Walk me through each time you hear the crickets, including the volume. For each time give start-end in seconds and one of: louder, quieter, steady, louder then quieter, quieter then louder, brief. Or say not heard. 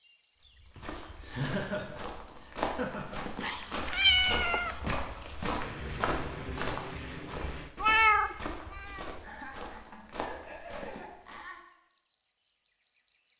0.0-13.3 quieter.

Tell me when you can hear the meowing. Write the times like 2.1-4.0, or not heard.
3.4-4.8, 7.8-9.1.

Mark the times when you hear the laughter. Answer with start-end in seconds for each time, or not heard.
0.8-3.2, 9.2-11.7.